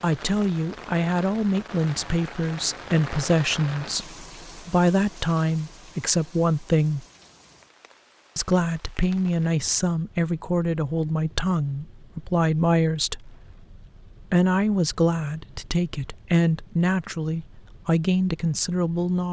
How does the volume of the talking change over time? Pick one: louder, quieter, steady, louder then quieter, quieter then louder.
steady.